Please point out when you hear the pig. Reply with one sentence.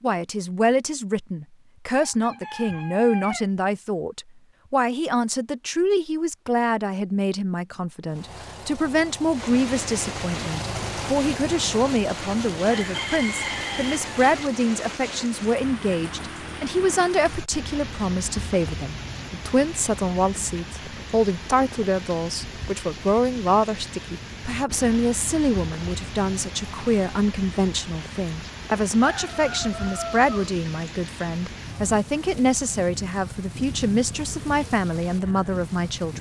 The pig can't be heard in this clip.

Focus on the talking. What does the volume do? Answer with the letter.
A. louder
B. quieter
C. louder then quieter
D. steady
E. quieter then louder
D.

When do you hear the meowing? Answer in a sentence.
The meowing can't be heard in this clip.